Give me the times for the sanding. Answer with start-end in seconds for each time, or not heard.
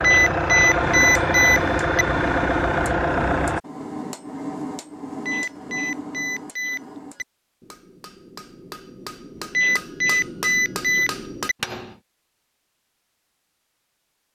not heard.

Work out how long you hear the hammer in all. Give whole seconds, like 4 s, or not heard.
11 s.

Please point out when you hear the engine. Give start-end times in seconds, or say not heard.
0.0-3.6.